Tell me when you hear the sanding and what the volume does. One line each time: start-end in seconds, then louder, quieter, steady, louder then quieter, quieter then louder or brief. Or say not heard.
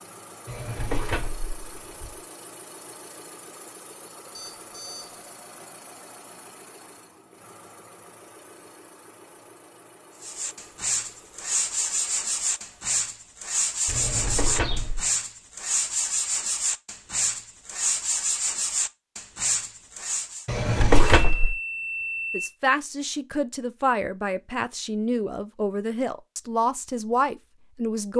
10.2-20.4 steady.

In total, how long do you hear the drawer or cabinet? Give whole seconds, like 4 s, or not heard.
4 s.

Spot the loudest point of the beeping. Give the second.
22 s.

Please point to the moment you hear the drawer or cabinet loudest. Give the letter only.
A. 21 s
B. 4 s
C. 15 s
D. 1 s
A.